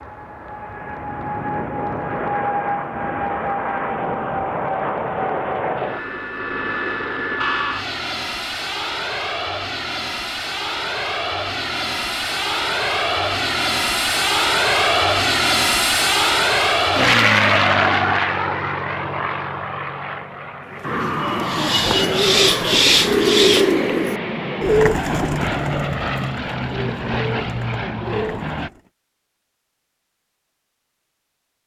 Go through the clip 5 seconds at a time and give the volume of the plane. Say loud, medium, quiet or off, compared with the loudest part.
medium, medium, loud, loud, medium, medium, off.